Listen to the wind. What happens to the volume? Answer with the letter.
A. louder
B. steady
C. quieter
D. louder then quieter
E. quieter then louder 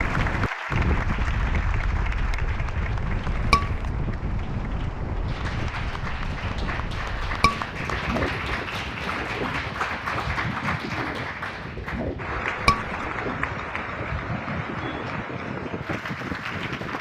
B.